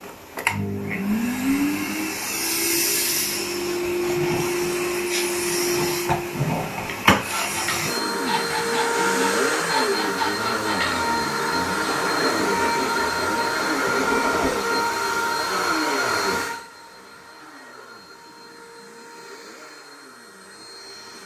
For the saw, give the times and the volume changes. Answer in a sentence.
You can hear the saw from 7.2 to 14.8 s, at a steady volume.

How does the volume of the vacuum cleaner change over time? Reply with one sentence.
The volume of the vacuum cleaner goes down.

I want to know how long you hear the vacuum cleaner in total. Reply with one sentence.
The vacuum cleaner can be heard for 21 seconds in total.